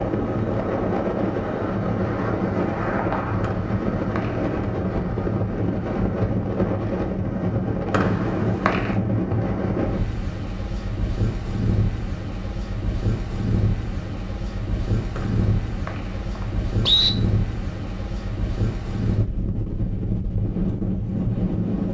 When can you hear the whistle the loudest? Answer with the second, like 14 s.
17 s.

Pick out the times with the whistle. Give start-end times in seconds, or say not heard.
3.4-4.7, 7.9-8.9, 15.2-17.1.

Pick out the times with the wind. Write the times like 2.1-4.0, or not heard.
0.0-21.8.